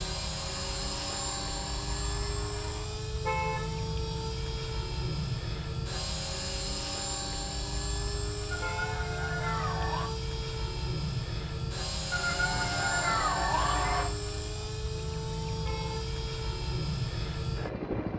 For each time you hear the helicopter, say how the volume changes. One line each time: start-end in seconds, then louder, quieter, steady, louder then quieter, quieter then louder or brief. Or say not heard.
0.0-18.1 steady.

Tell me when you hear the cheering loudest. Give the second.
13 s.